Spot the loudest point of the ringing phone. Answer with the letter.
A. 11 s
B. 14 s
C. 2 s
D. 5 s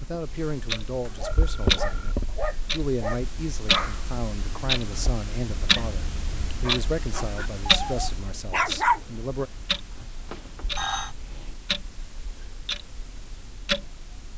A.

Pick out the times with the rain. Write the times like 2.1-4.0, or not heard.
not heard.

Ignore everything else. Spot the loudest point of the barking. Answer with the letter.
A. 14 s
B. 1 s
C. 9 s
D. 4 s
C.